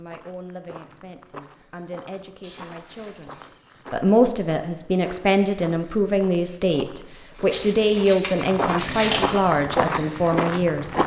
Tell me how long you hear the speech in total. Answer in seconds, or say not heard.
11 s.